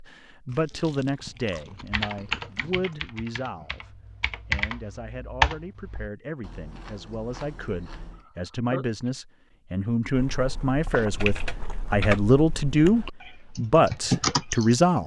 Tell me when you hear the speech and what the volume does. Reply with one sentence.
The speech can be heard from 0.0 to 15.0 s, getting quieter then louder.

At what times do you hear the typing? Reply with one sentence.
You can hear the typing from 1.9 to 6.1 s and from 10.9 to 14.8 s.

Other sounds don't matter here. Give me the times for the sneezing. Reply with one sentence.
You can hear the sneezing from 8.2 to 9.1 s.